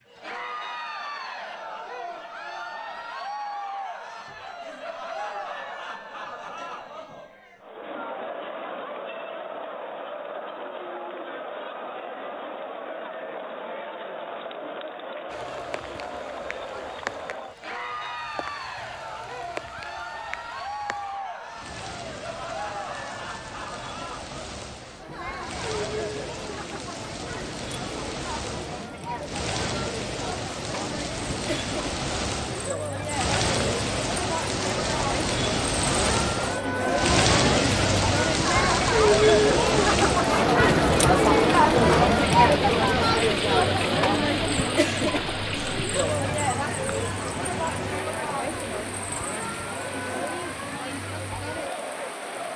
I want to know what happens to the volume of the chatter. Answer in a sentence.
The volume of the chatter goes up.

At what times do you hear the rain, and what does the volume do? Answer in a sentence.
The rain can be heard from 15.3 to 52.5 s, getting louder then quieter.